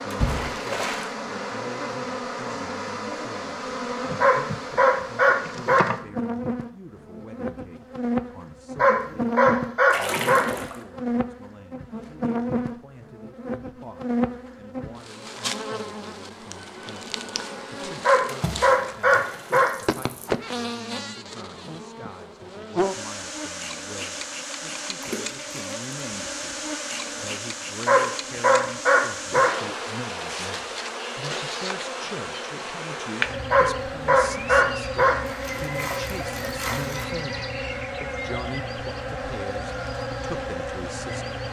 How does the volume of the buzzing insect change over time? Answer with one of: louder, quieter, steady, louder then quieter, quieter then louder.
steady.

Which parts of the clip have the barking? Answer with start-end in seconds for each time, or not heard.
4.2-5.9, 8.8-10.4, 18.0-19.7, 27.9-29.6, 33.5-35.2.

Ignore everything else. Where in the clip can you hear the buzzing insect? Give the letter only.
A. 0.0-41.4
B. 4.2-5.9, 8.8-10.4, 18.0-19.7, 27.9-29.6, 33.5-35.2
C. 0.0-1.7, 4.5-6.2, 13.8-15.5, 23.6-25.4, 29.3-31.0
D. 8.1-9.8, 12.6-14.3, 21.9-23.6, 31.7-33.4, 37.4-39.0
A.